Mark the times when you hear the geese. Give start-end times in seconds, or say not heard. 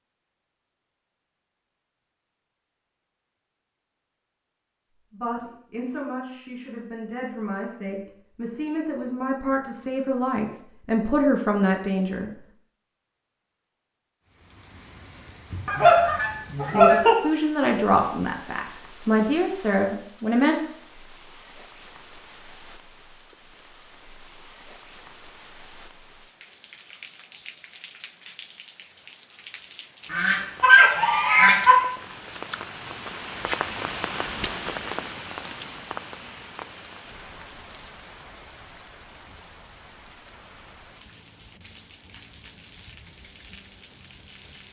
15.5-17.1, 30.1-31.8.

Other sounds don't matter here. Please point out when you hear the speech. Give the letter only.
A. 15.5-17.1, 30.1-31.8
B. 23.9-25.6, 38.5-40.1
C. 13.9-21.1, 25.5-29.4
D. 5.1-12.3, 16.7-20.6
D.